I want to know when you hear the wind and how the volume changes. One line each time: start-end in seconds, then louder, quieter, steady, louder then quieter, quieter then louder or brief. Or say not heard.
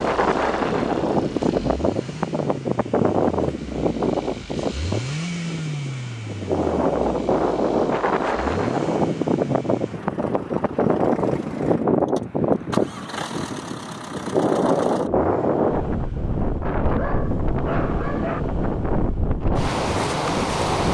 0.0-20.9 steady.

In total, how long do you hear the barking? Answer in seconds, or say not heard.
2 s.